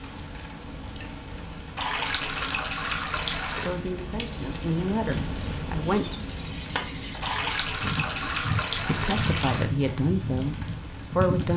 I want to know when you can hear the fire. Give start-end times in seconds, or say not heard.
0.0-11.5.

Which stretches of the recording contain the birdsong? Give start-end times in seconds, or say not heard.
4.2-11.5.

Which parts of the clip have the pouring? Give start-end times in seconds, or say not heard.
1.8-3.8, 7.2-9.7.